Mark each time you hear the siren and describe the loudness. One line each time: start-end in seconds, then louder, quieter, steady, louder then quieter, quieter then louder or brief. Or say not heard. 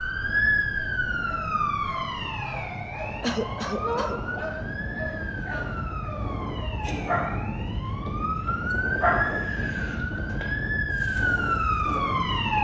0.0-12.5 quieter then louder.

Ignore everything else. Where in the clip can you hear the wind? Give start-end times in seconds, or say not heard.
0.0-12.5.